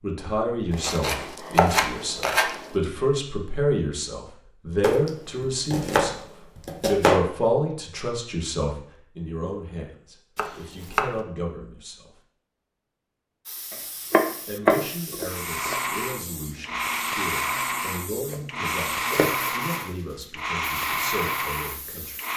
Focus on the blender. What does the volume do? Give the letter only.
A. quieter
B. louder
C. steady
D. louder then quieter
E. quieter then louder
C.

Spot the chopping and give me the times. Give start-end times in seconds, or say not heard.
0.7-2.8, 4.8-7.2, 10.3-11.2, 13.7-15.8, 18.3-19.5.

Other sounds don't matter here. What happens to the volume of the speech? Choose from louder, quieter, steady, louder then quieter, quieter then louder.
quieter.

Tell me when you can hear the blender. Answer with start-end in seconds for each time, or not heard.
15.2-22.3.